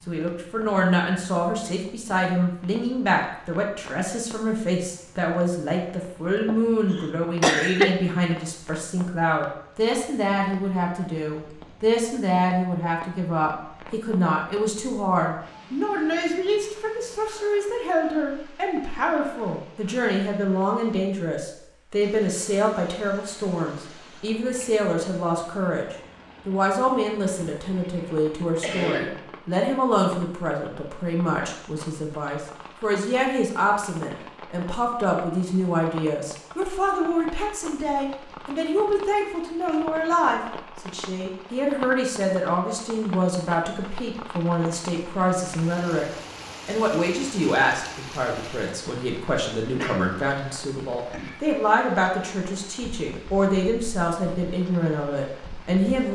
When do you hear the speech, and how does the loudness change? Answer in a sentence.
The speech can be heard from 0.1 to 56.1 s, at a steady volume.